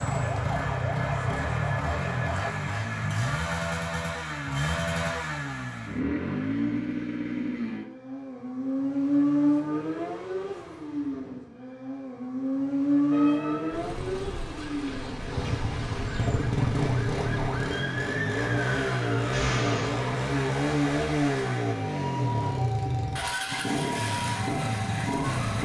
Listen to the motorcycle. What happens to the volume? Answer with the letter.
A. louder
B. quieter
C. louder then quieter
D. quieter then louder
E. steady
E.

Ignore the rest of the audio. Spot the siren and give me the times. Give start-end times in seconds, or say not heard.
0.0-2.5, 13.1-25.6.